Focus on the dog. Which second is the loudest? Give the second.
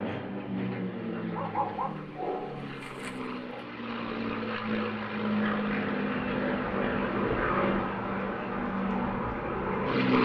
2 s.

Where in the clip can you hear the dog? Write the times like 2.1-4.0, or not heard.
1.3-3.7.